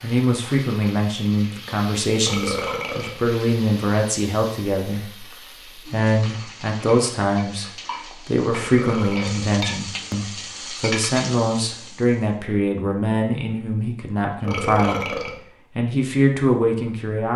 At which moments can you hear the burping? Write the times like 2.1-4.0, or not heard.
2.2-3.2, 8.5-9.5, 14.4-15.4.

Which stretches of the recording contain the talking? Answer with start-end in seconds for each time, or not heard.
0.0-17.3.